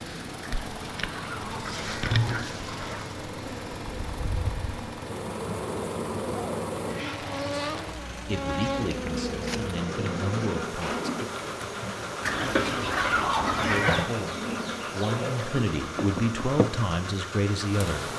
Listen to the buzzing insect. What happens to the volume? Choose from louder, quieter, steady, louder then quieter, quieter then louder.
steady.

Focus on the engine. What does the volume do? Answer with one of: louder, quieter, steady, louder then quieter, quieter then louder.
steady.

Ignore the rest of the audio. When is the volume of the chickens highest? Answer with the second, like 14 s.
14 s.